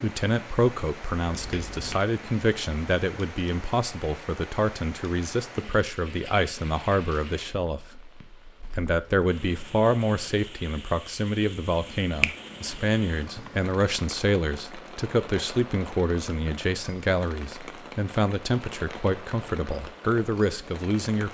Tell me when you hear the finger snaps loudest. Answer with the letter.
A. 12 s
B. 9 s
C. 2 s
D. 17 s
A.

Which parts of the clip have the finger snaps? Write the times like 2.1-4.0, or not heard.
1.2-2.0, 11.8-13.7.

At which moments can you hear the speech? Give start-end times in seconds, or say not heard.
0.0-8.1, 8.8-21.2.